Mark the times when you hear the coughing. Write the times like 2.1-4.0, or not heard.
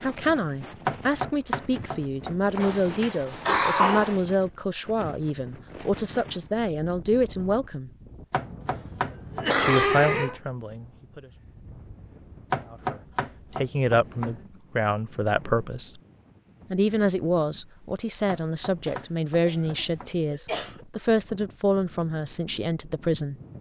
2.6-4.2, 9.0-10.4, 18.9-20.9.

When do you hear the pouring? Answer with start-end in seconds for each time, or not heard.
not heard.